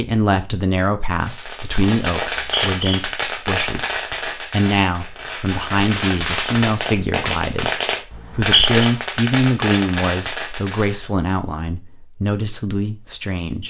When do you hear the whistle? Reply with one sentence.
The whistle can be heard from 2.2 to 3.0 s and from 8.1 to 8.8 s.